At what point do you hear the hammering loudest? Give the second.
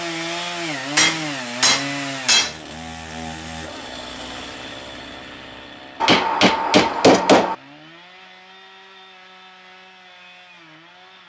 7 s.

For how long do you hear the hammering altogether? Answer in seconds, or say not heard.
3 s.